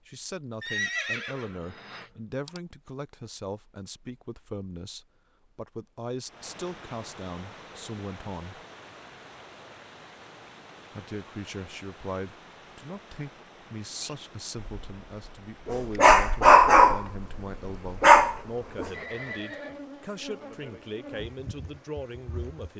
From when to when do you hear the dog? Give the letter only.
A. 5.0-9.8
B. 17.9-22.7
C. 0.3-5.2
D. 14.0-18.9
D.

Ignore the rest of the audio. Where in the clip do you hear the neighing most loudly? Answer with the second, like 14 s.
1 s.